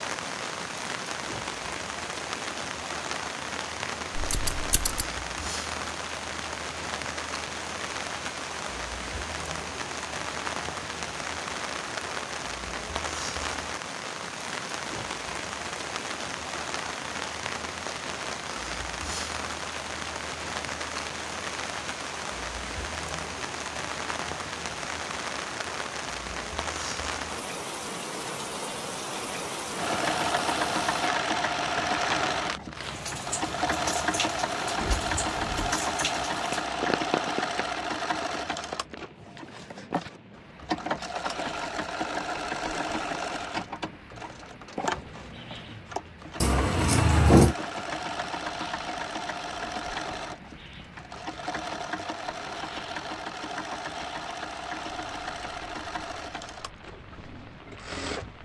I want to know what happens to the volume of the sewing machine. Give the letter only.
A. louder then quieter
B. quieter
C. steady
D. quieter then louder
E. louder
B.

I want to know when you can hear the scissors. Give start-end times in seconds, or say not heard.
4.2-5.0, 34.8-35.7, 46.4-47.5.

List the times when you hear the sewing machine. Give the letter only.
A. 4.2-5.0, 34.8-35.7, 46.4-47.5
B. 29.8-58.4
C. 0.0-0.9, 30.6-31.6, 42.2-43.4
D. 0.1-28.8
B.